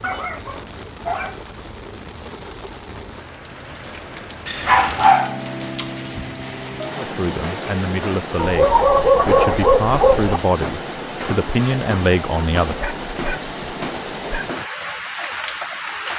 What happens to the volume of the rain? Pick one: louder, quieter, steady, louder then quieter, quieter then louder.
louder.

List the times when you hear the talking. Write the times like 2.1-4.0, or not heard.
7.0-12.8.